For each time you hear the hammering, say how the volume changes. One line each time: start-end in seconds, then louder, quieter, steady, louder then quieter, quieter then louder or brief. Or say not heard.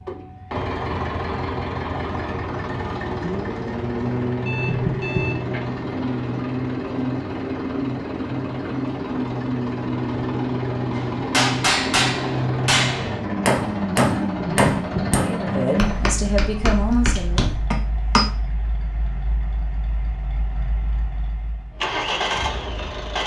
10.9-18.2 quieter.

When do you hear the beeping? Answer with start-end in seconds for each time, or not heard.
4.5-5.4.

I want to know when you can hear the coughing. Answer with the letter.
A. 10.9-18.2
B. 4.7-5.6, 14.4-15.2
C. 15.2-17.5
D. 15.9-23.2
B.